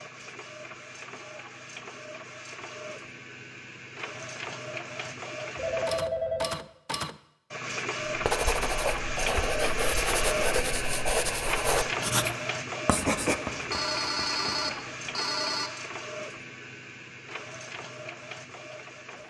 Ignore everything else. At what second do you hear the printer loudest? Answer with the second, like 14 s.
10 s.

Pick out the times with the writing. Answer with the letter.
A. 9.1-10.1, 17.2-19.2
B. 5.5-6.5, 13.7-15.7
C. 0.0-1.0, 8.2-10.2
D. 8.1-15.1
D.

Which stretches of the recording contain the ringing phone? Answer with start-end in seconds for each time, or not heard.
5.5-6.5, 13.7-15.7.